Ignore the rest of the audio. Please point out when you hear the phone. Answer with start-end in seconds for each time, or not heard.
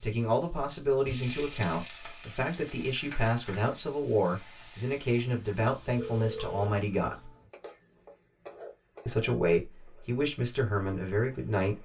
6.0-6.7.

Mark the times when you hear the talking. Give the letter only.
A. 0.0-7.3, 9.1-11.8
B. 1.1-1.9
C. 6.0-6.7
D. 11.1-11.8
A.